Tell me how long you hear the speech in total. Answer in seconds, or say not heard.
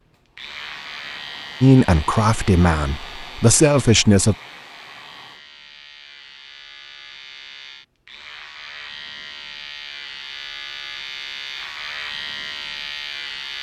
3 s.